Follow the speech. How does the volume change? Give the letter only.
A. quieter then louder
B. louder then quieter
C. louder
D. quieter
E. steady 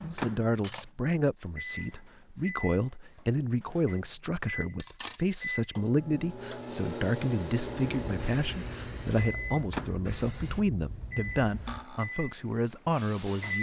E.